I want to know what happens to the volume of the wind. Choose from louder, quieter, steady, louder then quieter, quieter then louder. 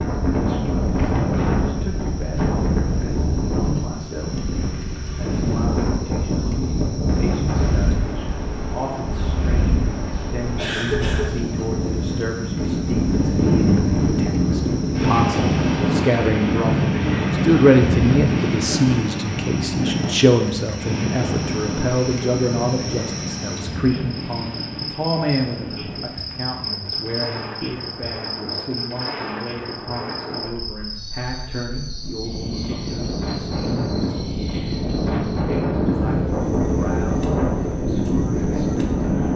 quieter then louder.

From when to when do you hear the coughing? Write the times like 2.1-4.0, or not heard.
10.6-11.4.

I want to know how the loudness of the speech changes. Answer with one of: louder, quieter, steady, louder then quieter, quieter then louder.
louder then quieter.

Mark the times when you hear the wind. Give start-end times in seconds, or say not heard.
0.0-39.3.